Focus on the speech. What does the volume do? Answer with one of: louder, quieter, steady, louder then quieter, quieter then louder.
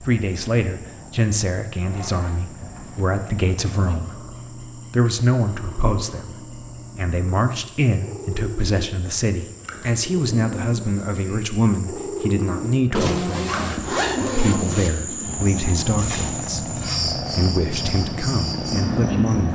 steady.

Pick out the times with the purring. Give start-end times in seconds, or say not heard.
0.0-19.4.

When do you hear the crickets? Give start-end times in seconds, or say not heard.
0.0-19.4.